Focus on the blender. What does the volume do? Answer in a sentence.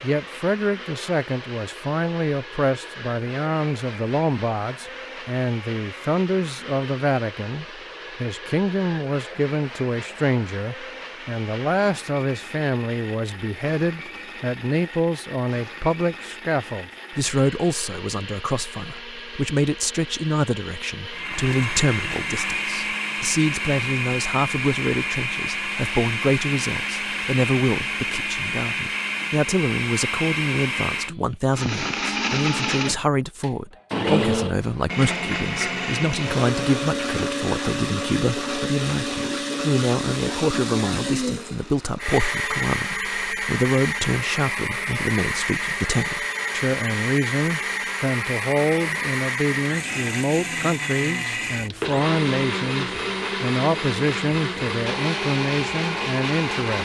The loudness of the blender goes up.